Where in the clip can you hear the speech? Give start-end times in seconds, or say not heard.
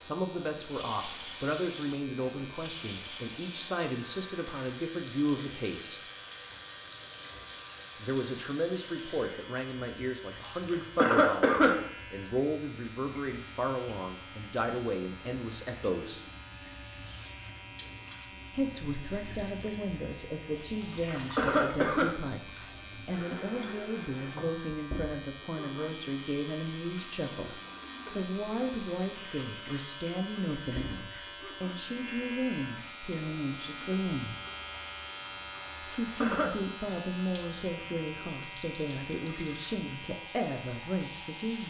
0.0-6.0, 8.0-16.2, 18.5-34.4, 35.8-41.6.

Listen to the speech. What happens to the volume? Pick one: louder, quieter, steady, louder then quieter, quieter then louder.
steady.